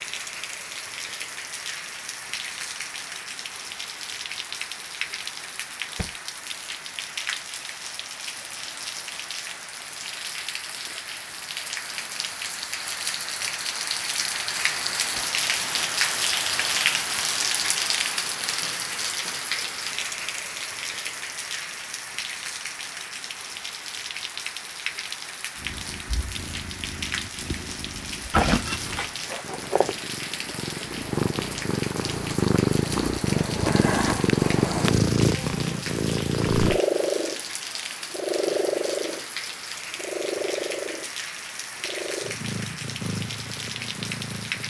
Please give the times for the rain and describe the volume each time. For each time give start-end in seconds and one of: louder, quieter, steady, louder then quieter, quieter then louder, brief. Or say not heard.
0.0-44.6 louder then quieter.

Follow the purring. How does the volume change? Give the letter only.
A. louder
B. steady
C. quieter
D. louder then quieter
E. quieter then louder
D.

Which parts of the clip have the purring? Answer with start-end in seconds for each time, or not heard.
25.6-44.6.